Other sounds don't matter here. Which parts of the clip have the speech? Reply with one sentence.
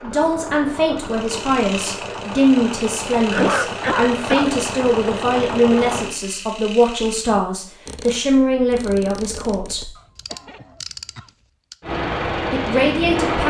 You can hear the speech from 0.0 to 9.9 s and from 12.3 to 13.4 s.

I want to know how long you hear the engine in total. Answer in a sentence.
You can hear the engine for 8 seconds altogether.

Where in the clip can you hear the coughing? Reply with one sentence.
You can hear the coughing from 3.3 to 4.5 s and from 9.9 to 11.3 s.